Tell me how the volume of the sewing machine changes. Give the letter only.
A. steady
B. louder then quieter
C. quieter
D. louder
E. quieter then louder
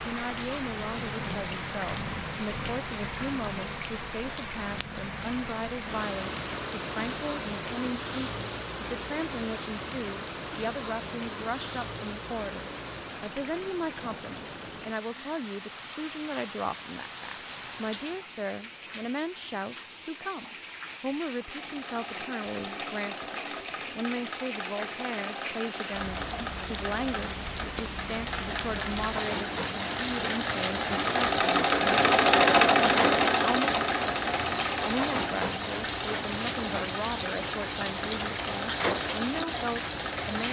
B.